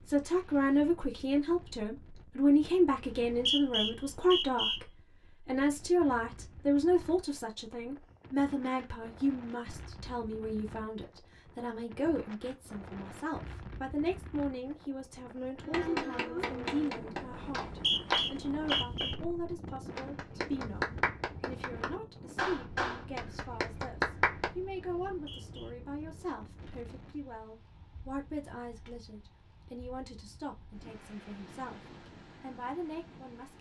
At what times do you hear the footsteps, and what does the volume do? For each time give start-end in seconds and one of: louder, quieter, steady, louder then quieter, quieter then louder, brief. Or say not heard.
not heard.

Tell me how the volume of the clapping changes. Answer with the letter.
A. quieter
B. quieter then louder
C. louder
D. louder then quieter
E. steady
E.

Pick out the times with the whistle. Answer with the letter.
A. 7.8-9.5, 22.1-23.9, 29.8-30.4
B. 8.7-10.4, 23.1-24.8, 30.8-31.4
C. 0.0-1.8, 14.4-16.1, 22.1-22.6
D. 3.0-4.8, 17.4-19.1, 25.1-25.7
D.